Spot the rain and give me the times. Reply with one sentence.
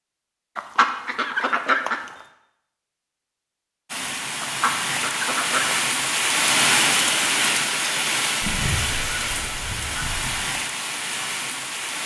You can hear the rain from 3.9 to 12.0 s.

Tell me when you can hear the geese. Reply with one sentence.
You can hear the geese from 0.6 to 2.0 s, from 4.4 to 5.8 s and from 8.4 to 10.4 s.